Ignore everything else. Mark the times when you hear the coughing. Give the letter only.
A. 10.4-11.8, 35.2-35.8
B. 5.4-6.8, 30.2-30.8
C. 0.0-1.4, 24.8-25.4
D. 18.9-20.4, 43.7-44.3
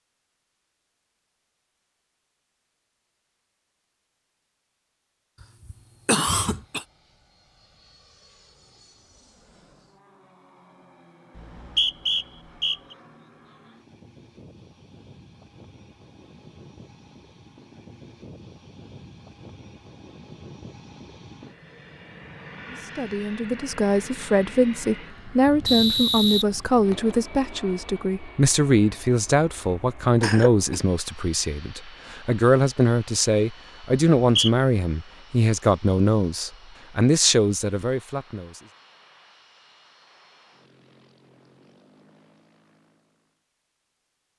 B.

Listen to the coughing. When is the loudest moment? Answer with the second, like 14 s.
6 s.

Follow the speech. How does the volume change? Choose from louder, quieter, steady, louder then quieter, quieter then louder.
steady.